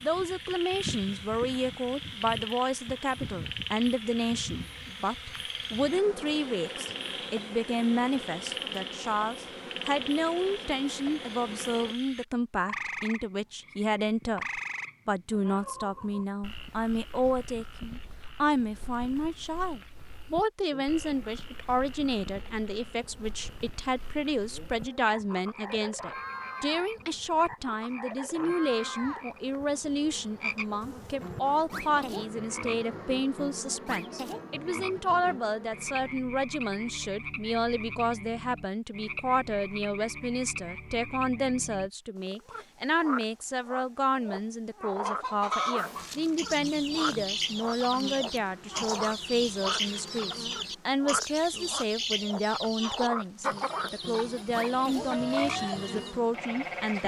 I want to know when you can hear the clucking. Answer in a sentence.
The clucking can be heard from 45.0 to 56.1 s.